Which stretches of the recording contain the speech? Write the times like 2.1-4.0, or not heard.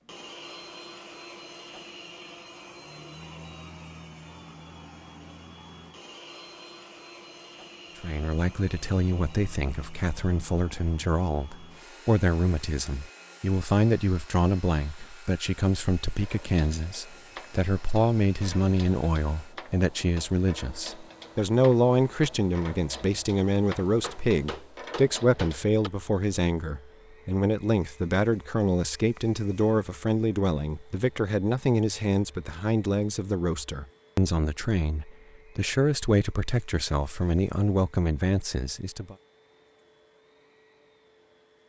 8.0-39.1.